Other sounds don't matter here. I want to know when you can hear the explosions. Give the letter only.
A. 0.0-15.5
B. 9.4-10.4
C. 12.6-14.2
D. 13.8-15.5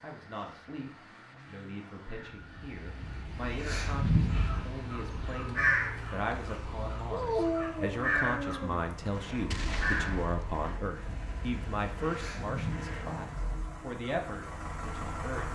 B.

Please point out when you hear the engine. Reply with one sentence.
You can hear the engine from 0.0 to 15.5 s.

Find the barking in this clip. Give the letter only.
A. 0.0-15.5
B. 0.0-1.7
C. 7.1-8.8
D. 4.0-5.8
C.